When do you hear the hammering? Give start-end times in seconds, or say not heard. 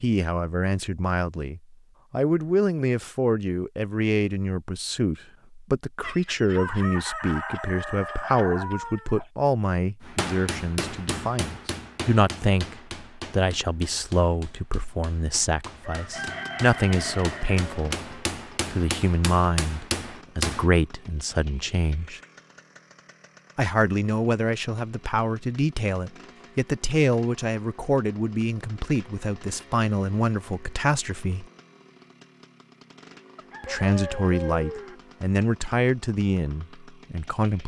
10.0-20.7.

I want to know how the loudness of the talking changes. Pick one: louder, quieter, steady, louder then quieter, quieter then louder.
steady.